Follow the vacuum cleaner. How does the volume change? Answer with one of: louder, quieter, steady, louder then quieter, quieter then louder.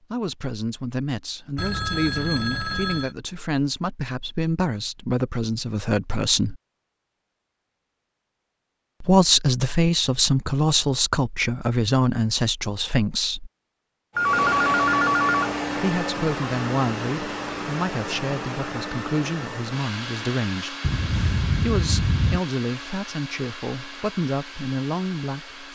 quieter.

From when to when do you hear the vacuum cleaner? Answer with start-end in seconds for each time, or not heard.
14.2-25.7.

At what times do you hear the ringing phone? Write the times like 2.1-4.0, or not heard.
1.6-3.1, 14.2-15.5, 20.8-22.4.